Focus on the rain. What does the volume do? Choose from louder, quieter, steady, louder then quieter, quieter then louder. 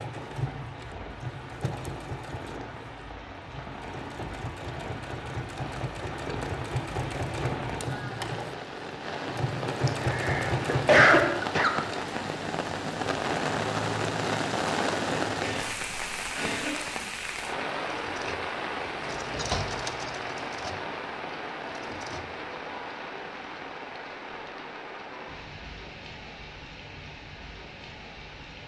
louder then quieter.